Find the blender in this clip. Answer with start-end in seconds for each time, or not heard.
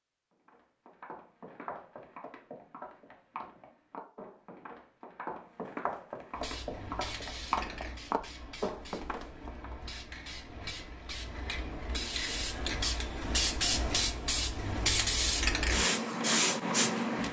not heard.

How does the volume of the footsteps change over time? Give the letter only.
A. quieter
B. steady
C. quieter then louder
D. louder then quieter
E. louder
E.